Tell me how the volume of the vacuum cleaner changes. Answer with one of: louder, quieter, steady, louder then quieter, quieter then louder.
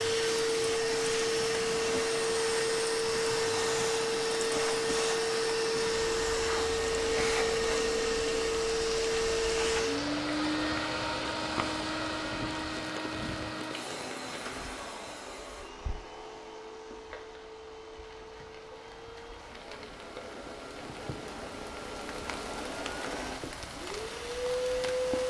quieter then louder.